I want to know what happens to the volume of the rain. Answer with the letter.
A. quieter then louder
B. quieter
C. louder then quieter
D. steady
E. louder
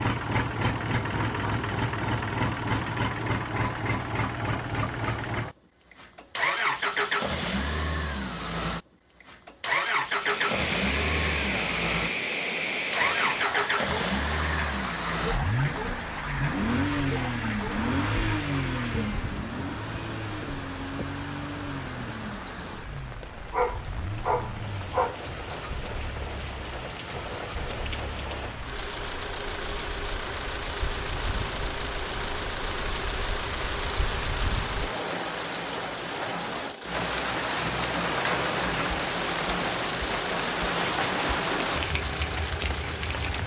A.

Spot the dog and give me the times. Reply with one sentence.
The dog can be heard from 23.2 to 25.2 s.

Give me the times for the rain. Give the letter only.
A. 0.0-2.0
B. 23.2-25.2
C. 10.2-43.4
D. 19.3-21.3
C.